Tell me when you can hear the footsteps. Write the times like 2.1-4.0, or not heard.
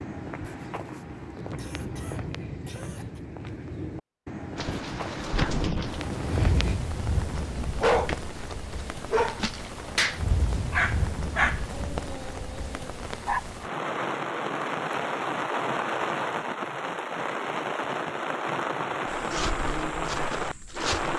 0.0-6.8, 19.1-21.1.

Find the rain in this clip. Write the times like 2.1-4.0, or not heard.
4.5-21.1.